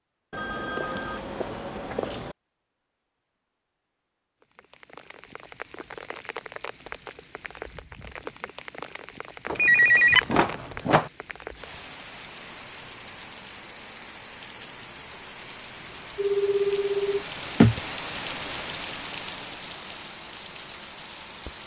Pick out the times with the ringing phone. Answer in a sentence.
You can hear the ringing phone from 0.3 to 2.4 s, from 9.4 to 11.1 s and from 16.1 to 17.8 s.